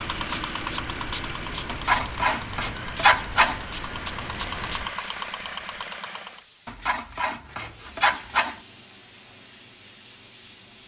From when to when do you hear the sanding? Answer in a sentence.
You can hear the sanding from 1.6 to 3.6 s and from 6.7 to 8.6 s.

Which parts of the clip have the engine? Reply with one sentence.
You can hear the engine from 0.0 to 6.5 s.